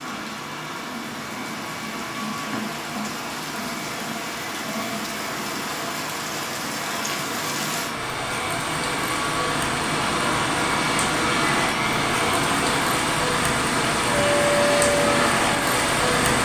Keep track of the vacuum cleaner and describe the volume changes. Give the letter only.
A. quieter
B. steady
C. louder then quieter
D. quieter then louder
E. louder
E.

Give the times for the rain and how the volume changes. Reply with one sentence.
The rain can be heard from 0.0 to 16.3 s, getting louder.